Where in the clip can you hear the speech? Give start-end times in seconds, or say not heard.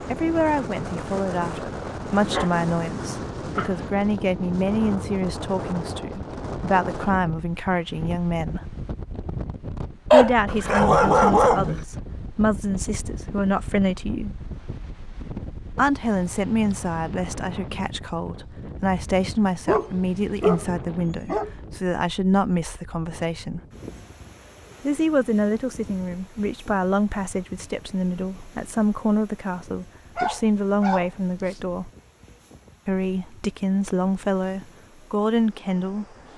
0.1-8.6, 10.1-14.3, 15.7-23.6, 24.8-31.9, 32.9-36.0.